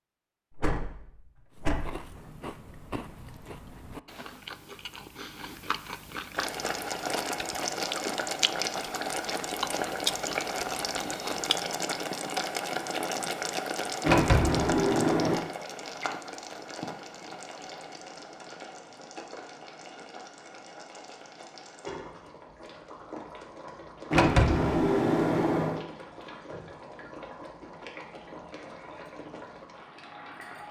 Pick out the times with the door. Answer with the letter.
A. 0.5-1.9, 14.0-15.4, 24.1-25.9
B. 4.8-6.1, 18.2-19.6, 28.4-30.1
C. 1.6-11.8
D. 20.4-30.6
A.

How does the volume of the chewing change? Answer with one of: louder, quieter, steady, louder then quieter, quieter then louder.
louder.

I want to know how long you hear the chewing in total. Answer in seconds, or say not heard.
10 s.